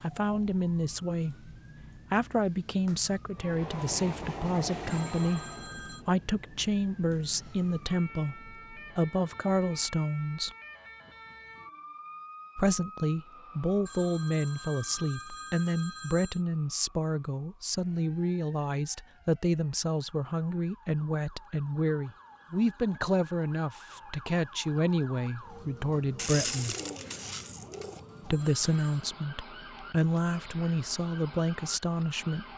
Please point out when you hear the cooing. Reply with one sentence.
You can hear the cooing from 26.1 to 28.0 s.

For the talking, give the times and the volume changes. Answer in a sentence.
The talking can be heard from 0.0 to 10.5 s, at a steady volume; from 12.6 to 26.8 s, at a steady volume; and from 28.2 to 32.5 s, at a steady volume.